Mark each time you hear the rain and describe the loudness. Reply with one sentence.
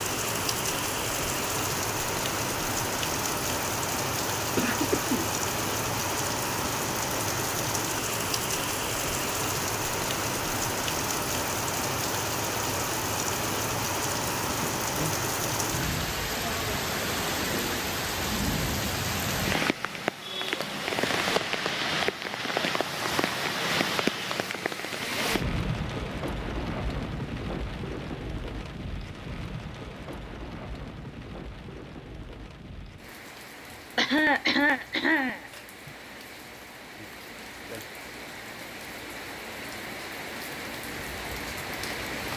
You can hear the rain from 0.0 to 42.3 s, getting quieter.